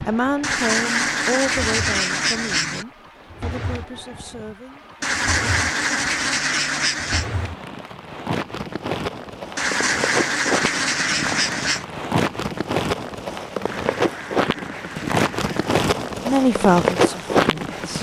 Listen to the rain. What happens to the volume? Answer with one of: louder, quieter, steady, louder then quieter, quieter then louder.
louder.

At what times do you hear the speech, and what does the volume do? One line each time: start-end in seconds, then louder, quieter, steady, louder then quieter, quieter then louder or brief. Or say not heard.
0.0-4.8 quieter
16.2-17.9 brief.